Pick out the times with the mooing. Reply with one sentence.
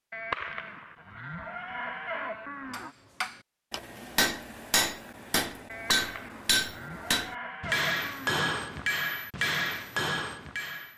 You can hear the mooing from 0.1 to 3.0 s and from 5.7 to 8.4 s.